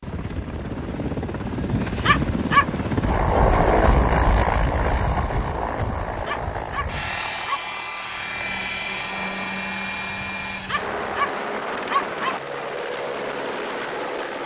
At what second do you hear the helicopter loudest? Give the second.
4 s.